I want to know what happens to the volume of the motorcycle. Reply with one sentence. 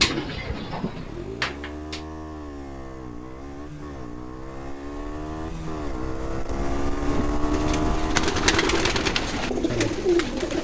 The volume of the motorcycle goes up.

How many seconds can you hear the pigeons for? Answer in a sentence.
You can hear the pigeons for 6 seconds altogether.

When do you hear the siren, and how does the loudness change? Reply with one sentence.
You can't hear the siren here.